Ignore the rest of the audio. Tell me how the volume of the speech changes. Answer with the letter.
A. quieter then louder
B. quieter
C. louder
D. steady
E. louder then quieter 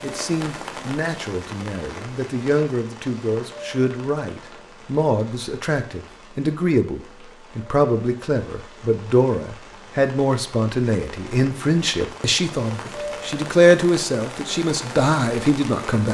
C.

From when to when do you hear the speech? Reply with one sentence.
You can hear the speech from 0.0 to 16.0 s.